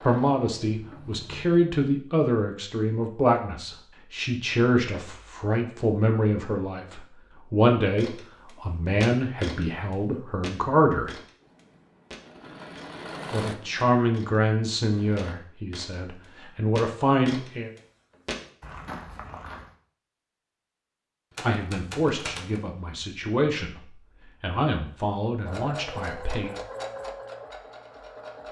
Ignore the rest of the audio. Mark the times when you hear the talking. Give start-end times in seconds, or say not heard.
0.1-11.1, 13.3-17.7, 21.4-26.6.